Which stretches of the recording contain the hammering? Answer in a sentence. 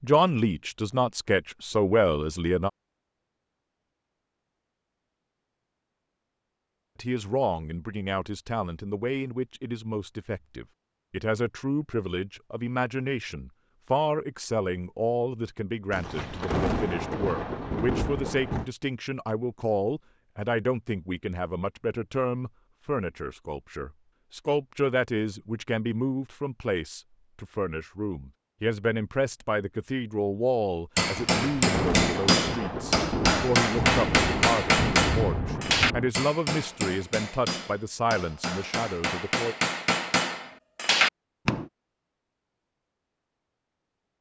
You can hear the hammering from 30.9 to 41.6 s.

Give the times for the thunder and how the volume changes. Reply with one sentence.
The thunder can be heard briefly from 15.9 to 18.7 s; and from 31.1 to 36.1 s, at a steady volume.